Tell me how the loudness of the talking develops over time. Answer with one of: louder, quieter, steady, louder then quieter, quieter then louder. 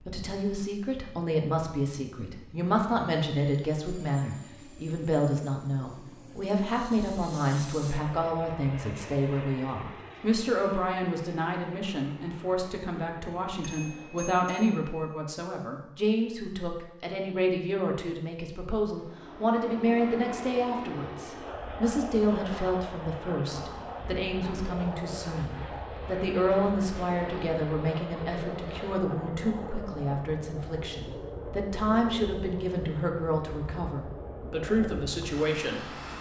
steady.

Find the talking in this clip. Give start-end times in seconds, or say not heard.
0.1-36.1.